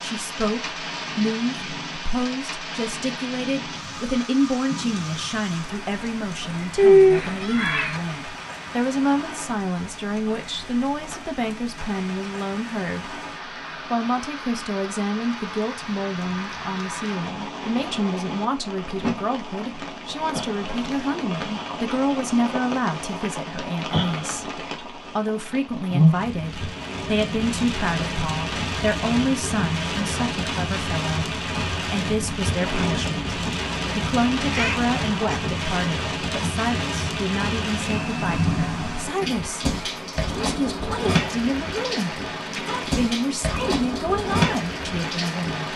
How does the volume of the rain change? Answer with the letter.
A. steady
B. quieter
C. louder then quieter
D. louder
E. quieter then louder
D.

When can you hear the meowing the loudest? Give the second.
7 s.